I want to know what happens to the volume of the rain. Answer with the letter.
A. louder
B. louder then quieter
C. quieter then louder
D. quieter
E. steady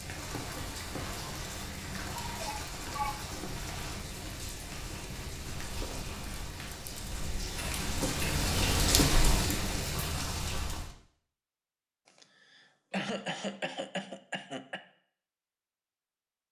A.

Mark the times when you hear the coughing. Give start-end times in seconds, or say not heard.
2.2-3.2, 7.5-8.4, 12.2-14.8.